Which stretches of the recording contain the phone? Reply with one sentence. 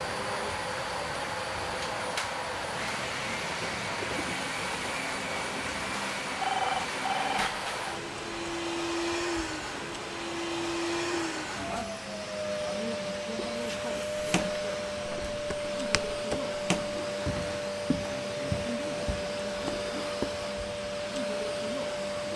You can hear the phone from 6.4 to 7.5 s.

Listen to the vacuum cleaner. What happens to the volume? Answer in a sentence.
The loudness of the vacuum cleaner stays about the same.